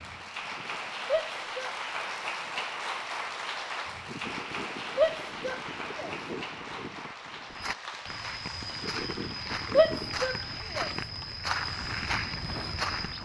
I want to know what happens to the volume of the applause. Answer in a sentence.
The volume of the applause goes down.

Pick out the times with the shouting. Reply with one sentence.
You can hear the shouting from 1.1 to 1.7 s, from 5.0 to 6.1 s and from 9.7 to 10.9 s.